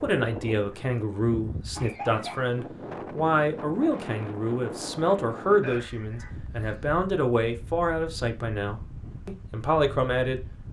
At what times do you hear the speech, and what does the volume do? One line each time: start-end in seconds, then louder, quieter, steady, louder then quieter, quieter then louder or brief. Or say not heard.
0.0-10.4 steady.